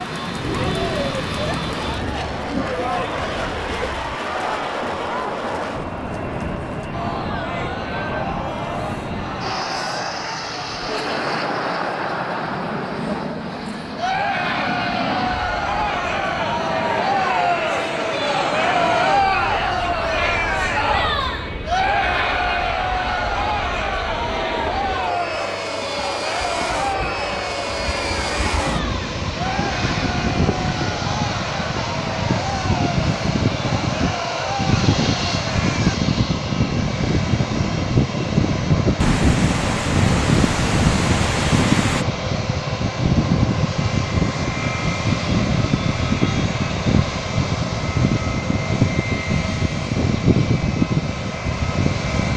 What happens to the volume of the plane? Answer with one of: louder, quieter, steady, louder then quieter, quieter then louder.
louder.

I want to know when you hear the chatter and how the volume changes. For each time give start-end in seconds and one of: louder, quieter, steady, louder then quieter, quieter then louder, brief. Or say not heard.
0.0-36.0 louder then quieter.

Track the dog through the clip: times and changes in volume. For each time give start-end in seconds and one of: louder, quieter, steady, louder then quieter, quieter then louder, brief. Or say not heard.
not heard.